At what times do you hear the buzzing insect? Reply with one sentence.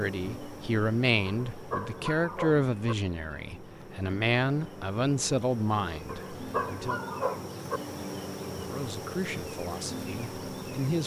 The buzzing insect can be heard from 0.0 to 11.0 s.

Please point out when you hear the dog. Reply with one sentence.
You can hear the dog from 1.2 to 3.0 s and from 6.0 to 7.8 s.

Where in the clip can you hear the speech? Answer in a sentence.
You can hear the speech from 0.0 to 7.0 s and from 8.6 to 11.0 s.